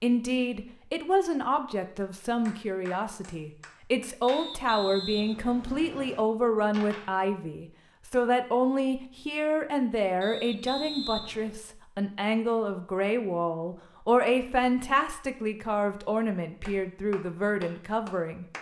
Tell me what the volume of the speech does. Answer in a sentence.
The loudness of the speech stays about the same.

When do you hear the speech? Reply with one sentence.
The speech can be heard from 0.0 to 18.4 s.